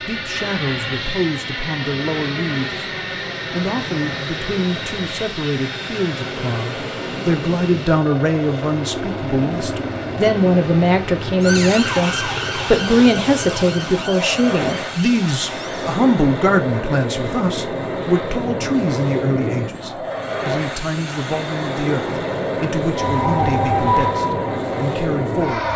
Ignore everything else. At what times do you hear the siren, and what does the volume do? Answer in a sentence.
You can hear the siren from 11.4 to 15.9 s, getting quieter; and briefly from 22.9 to 25.7 s.